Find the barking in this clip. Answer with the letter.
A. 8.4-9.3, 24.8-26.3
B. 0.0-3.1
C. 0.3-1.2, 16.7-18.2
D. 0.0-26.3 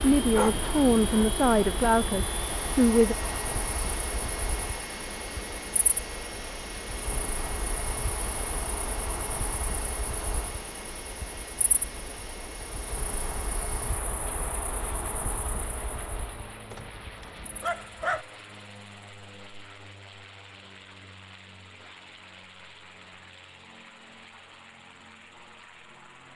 C.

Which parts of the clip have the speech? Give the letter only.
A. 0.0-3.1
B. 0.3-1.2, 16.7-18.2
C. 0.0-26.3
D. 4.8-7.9
A.